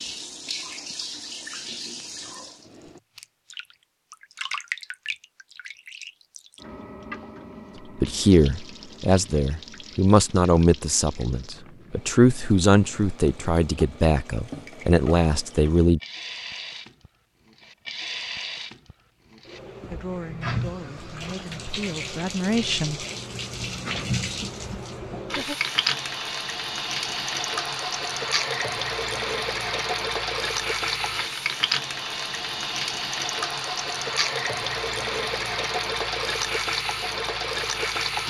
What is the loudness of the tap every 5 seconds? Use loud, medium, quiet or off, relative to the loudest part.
medium, quiet, quiet, medium, medium, loud, loud, loud.